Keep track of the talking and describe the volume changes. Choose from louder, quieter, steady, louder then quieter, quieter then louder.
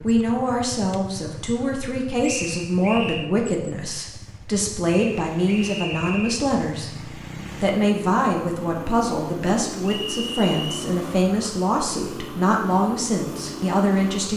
steady.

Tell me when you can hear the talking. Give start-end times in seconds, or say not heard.
0.0-14.3.